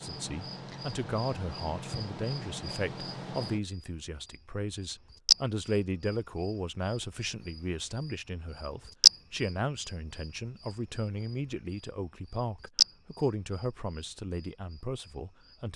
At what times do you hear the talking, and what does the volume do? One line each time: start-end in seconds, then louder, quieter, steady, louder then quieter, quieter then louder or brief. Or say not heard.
0.0-15.7 steady.